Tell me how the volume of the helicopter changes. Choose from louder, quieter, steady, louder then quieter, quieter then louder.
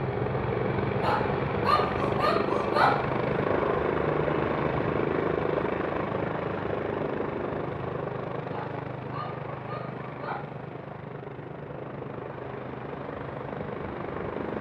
quieter.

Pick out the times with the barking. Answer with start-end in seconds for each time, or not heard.
1.0-3.1, 8.4-10.5.